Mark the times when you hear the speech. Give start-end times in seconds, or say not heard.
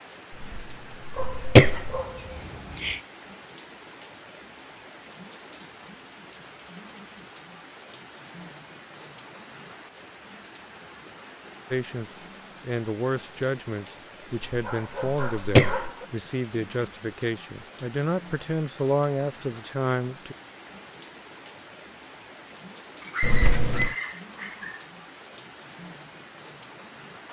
11.7-20.4.